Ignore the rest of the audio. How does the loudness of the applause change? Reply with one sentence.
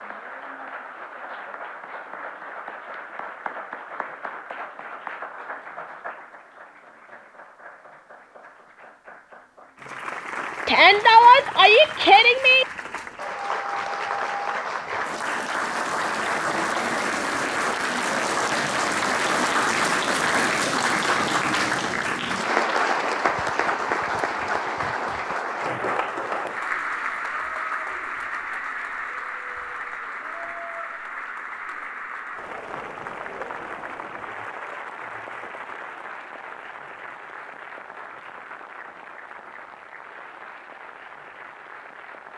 The volume of the applause goes up, then down.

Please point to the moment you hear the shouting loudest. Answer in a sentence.
The loudest moment of the shouting is at 11 seconds.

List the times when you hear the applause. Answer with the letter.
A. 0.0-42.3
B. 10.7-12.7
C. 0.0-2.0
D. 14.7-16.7
A.